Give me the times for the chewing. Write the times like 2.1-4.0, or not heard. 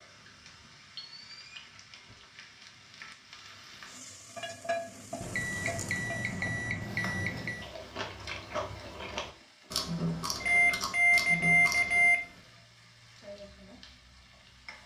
7.5-12.1.